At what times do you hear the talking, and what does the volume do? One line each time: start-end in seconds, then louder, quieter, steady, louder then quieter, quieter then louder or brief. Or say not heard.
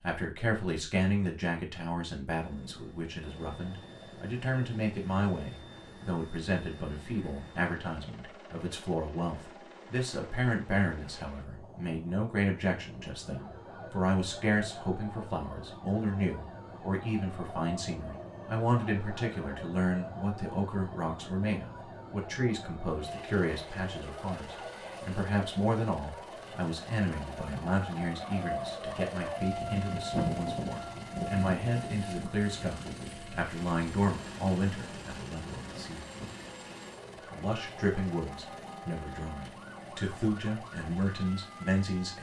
0.0-36.1 steady
37.3-42.1 quieter then louder.